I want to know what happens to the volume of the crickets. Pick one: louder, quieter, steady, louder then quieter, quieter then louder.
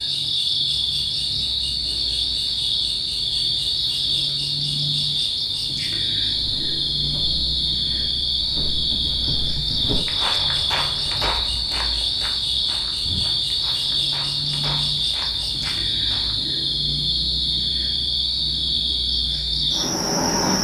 steady.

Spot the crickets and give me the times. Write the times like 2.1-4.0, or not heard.
0.0-20.5.